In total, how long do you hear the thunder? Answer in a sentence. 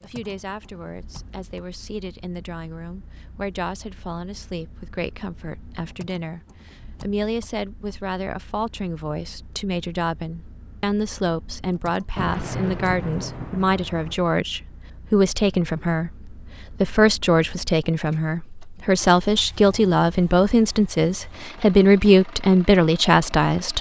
The thunder can be heard for 2 seconds in total.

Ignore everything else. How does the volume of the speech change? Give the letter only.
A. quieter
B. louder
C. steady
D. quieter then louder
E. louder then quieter
B.